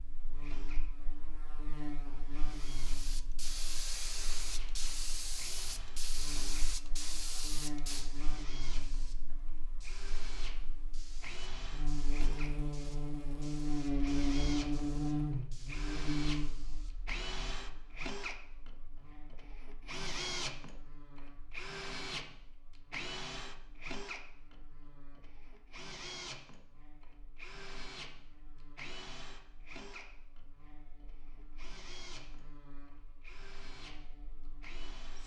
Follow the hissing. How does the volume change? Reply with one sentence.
The volume of the hissing goes down.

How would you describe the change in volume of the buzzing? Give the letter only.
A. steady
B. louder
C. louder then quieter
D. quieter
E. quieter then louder
C.